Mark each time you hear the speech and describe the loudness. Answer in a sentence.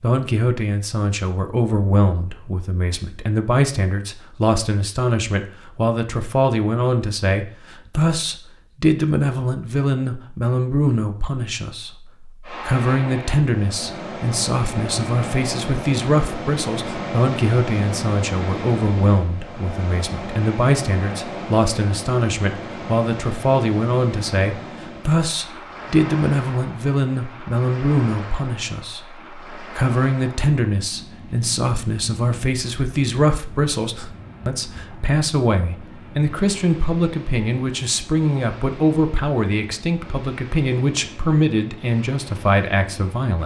You can hear the speech from 0.0 to 43.4 s, at a steady volume.